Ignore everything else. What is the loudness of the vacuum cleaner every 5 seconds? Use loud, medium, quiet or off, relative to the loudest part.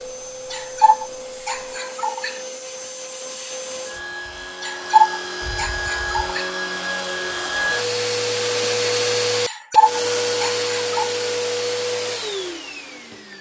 medium, loud, loud.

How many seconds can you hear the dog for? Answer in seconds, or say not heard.
5 s.